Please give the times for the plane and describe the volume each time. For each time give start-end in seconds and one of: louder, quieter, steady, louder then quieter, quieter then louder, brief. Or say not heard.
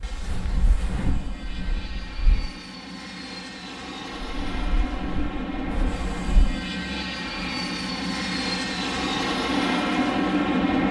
0.0-10.8 louder.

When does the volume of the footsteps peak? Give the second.
1 s.